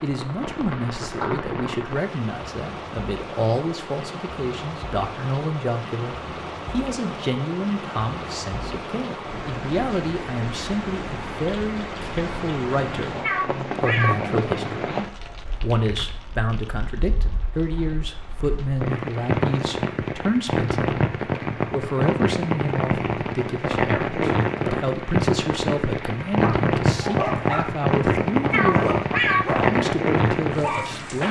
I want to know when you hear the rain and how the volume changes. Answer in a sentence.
You can hear the rain from 0.0 to 31.2 s, getting louder.